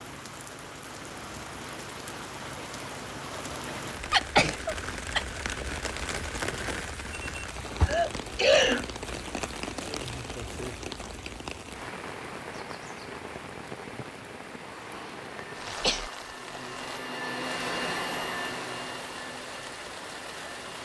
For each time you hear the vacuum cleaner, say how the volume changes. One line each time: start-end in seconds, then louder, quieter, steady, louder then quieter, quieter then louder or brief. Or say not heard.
14.6-20.7 louder then quieter.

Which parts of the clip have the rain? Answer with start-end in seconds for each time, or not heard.
0.0-20.7.